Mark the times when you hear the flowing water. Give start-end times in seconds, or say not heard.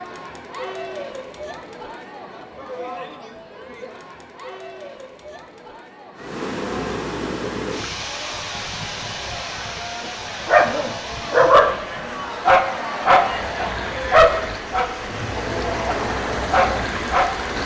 6.2-17.6.